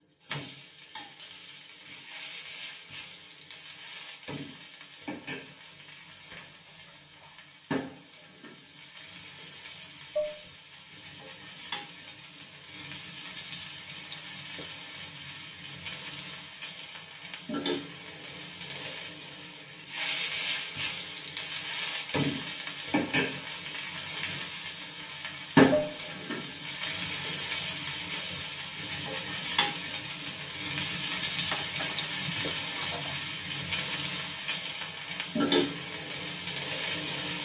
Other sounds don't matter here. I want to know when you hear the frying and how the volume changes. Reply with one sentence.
You can hear the frying from 0.1 to 37.4 s, getting louder.